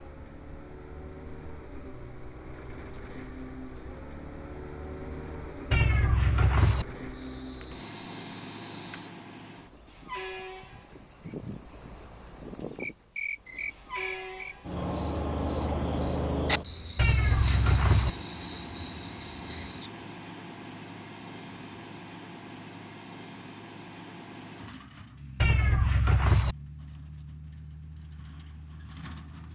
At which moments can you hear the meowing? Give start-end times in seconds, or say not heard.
5.7-6.8, 16.9-18.1, 25.4-26.6.